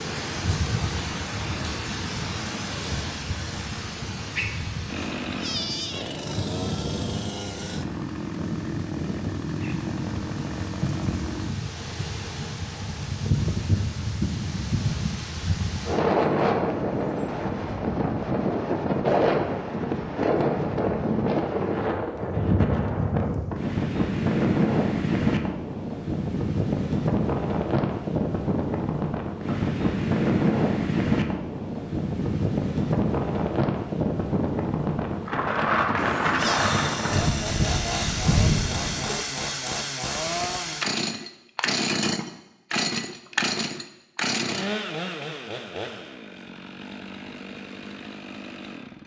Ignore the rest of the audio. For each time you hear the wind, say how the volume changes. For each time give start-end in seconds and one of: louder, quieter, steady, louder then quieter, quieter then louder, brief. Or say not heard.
0.0-39.2 louder.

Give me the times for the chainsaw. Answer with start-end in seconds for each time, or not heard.
4.8-11.5, 36.4-49.0.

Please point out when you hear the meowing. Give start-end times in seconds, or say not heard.
5.2-6.1, 36.0-36.6.